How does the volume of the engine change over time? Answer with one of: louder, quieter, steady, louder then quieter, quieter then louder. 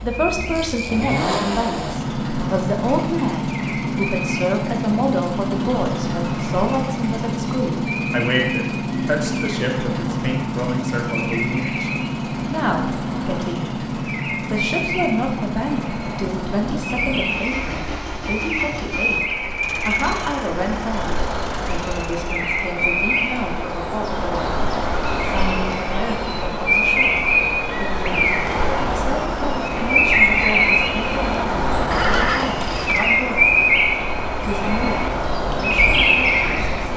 quieter.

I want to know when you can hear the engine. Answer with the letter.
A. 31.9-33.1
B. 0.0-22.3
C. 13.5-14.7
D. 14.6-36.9
B.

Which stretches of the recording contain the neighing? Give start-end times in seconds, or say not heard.
31.9-33.1.